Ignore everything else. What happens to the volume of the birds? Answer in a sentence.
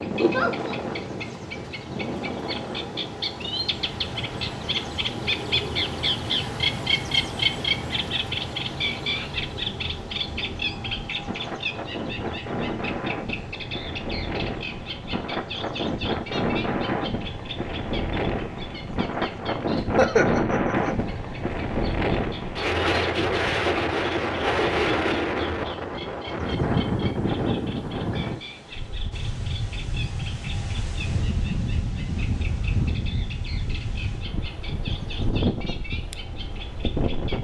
The volume of the birds goes down.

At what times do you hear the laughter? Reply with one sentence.
The laughter can be heard from 0.1 to 0.8 s and from 19.9 to 20.7 s.